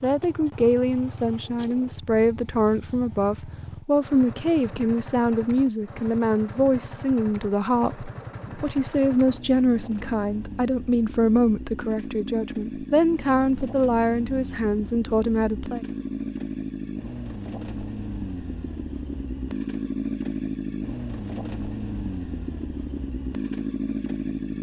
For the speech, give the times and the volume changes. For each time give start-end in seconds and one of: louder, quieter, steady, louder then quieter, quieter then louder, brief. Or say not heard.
0.0-15.8 steady.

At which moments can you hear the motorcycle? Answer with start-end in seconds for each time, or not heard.
0.0-24.5.